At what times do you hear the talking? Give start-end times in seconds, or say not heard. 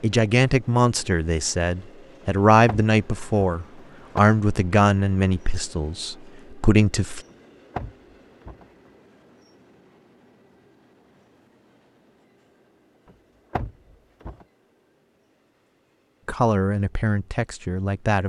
0.0-7.2, 16.2-18.2.